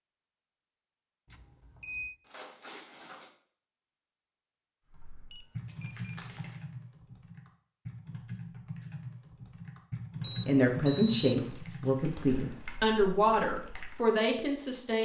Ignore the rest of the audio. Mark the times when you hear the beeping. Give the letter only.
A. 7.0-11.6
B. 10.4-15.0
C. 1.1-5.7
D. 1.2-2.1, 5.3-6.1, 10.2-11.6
D.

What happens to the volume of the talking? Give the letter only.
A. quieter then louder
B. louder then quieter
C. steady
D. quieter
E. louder
C.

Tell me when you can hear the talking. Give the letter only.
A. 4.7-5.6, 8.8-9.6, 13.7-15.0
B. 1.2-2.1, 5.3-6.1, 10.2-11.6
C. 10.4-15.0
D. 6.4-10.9
C.